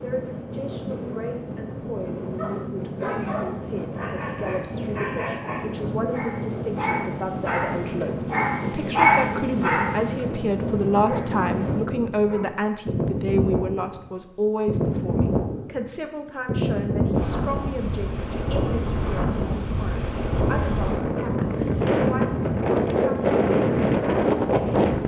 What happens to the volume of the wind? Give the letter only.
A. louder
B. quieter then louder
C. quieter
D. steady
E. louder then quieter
A.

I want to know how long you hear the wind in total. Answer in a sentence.
The wind can be heard for 25 seconds in total.